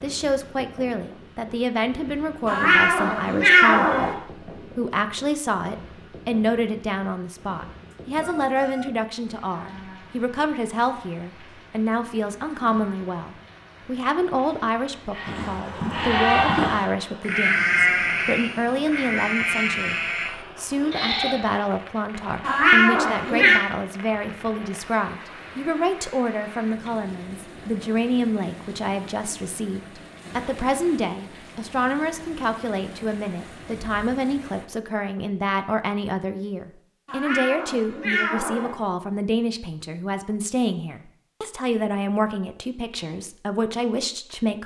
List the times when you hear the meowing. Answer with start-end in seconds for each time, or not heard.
2.5-4.2, 22.4-23.6, 37.0-38.8.